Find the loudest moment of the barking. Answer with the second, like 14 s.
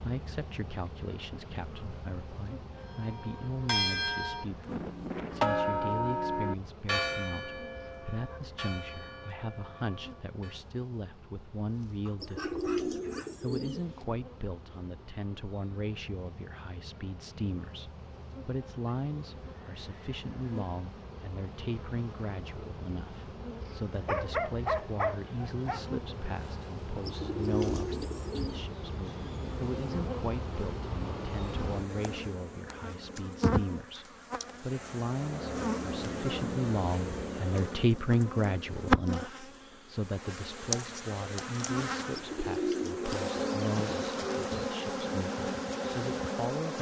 24 s.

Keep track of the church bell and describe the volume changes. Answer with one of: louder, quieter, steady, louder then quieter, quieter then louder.
quieter.